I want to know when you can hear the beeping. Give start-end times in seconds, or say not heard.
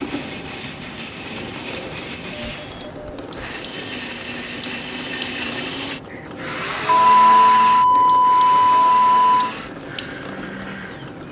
2.3-3.0, 6.8-9.5.